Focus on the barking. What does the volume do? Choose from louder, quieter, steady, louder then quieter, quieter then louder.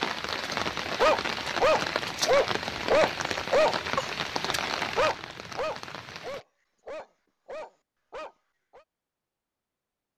quieter.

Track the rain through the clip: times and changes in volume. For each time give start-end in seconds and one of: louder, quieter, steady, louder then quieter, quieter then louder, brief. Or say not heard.
0.0-6.5 quieter.